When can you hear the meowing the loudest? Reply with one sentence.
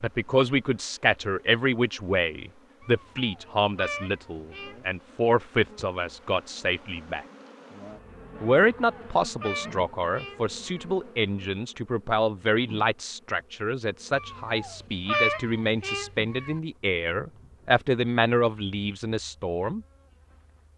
The loudest moment of the meowing is at 15 seconds.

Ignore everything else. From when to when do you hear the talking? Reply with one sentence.
You can hear the talking from 0.0 to 7.2 s and from 8.4 to 19.8 s.